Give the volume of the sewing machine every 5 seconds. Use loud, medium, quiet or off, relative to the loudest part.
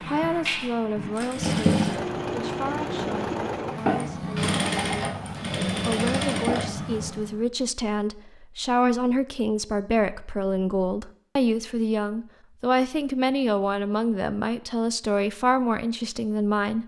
loud, loud, off, off.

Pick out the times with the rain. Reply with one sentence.
The rain can't be heard in this clip.